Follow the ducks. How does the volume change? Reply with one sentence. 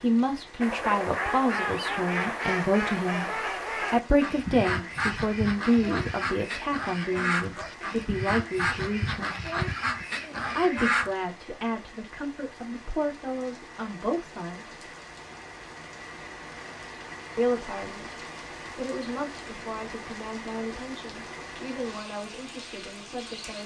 The loudness of the ducks stays about the same.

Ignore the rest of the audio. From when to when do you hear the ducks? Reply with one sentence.
The ducks can be heard from 0.6 to 11.1 s.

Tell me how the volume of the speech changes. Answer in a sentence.
The volume of the speech goes down.